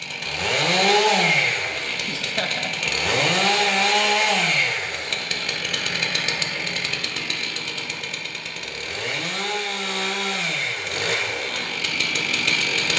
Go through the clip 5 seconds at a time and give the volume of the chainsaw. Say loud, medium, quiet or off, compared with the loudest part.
loud, medium, loud.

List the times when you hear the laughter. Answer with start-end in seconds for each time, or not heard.
2.0-2.9.